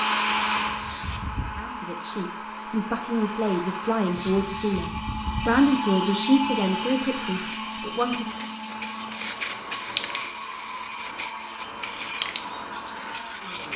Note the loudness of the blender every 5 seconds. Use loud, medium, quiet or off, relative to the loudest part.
loud, loud, medium.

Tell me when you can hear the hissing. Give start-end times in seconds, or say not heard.
0.1-1.6, 4.0-13.7.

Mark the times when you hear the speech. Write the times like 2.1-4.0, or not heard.
1.6-8.4.